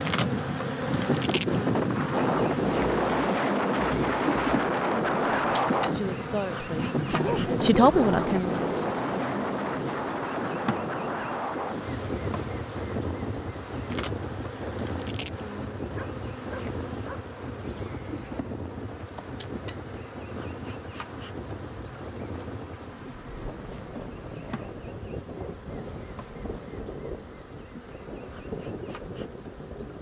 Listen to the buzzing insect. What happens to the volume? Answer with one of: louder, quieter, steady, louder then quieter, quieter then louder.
quieter.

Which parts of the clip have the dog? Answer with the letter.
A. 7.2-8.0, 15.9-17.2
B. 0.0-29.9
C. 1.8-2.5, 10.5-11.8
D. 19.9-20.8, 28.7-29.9
A.